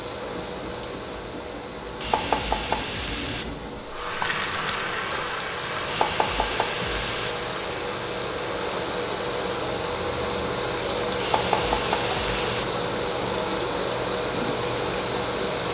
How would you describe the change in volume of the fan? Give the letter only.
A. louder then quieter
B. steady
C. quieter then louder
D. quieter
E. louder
E.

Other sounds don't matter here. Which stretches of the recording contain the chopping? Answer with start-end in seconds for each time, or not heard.
2.0-3.5, 5.8-7.3, 11.2-12.7.